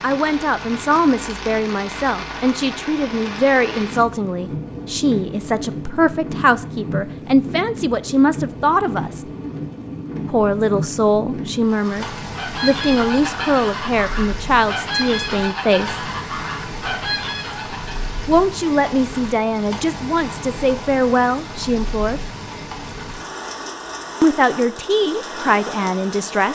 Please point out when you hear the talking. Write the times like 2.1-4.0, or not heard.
0.0-9.2, 10.3-16.1, 18.2-22.2, 24.2-26.4.